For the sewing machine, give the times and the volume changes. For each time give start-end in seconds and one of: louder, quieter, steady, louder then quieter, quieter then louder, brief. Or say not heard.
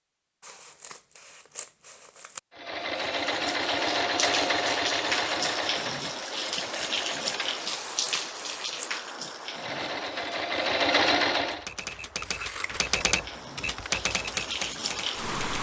2.5-7.8 quieter
9.5-11.7 brief.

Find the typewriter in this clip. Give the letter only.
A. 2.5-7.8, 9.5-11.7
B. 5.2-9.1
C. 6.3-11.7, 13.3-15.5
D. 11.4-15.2
D.